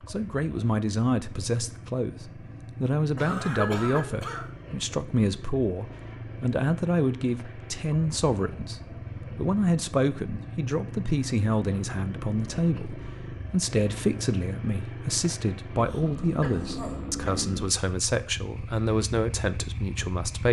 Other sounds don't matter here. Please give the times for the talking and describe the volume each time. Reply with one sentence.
The talking can be heard from 0.1 to 20.4 s, at a steady volume.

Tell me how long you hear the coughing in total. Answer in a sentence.
You can hear the coughing for 3 seconds altogether.